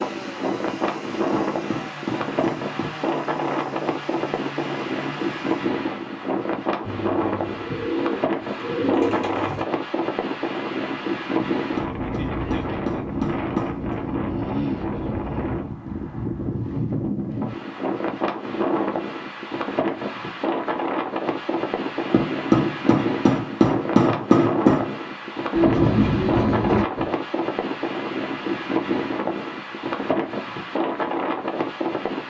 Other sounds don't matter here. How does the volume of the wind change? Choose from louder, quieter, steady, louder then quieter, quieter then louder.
steady.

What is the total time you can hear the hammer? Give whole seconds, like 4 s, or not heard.
7 s.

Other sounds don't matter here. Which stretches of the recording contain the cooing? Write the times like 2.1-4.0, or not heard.
6.8-9.7, 25.5-27.1.